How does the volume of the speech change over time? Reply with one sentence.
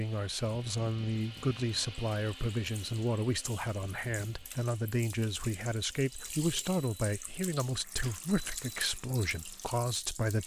The loudness of the speech stays about the same.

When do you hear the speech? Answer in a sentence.
The speech can be heard from 0.0 to 10.4 s.